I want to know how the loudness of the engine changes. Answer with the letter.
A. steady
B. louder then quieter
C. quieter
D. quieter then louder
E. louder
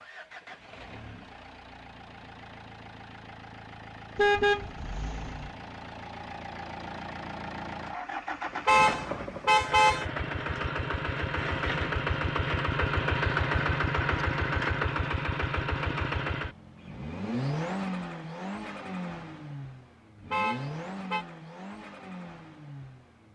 B.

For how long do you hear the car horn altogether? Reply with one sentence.
The car horn can be heard for 4 seconds in total.